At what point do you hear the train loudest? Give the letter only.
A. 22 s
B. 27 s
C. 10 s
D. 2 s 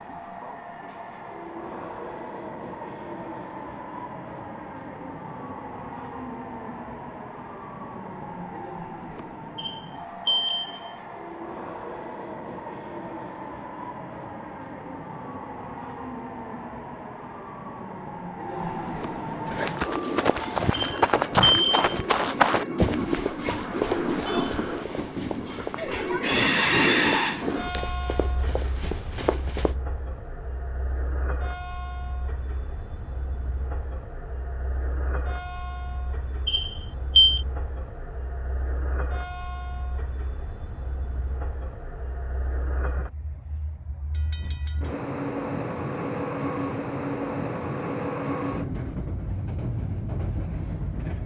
B.